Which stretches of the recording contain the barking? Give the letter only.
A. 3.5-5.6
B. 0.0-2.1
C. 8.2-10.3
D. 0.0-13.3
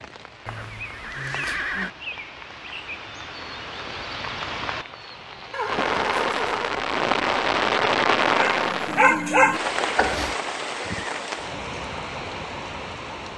C.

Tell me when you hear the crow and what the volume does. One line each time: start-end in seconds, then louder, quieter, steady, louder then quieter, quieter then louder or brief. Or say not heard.
not heard.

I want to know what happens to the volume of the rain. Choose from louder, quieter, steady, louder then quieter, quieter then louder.
louder then quieter.